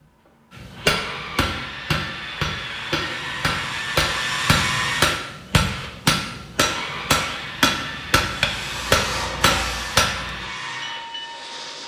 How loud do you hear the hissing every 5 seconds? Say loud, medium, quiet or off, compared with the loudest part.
off, loud, medium.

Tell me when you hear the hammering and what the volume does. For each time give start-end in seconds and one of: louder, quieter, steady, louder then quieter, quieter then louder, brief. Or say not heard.
0.6-10.4 louder.